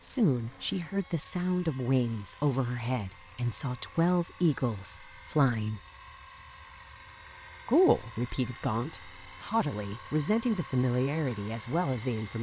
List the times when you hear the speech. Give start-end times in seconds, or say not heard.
0.0-5.8, 7.7-12.3.